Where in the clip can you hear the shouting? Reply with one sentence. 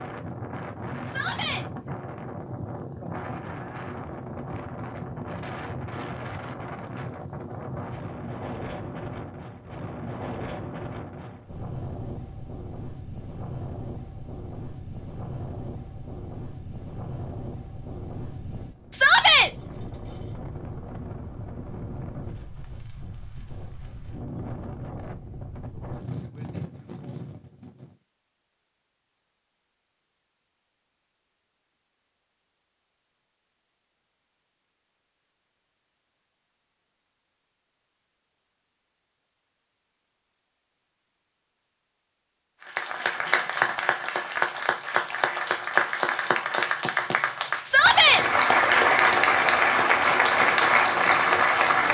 You can hear the shouting from 1.1 to 1.6 s, from 18.9 to 19.5 s and from 47.6 to 48.2 s.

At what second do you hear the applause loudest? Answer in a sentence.
The loudest moment of the applause is at 49 seconds.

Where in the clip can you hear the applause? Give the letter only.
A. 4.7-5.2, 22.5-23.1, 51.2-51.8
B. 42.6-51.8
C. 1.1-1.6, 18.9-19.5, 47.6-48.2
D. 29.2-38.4
B.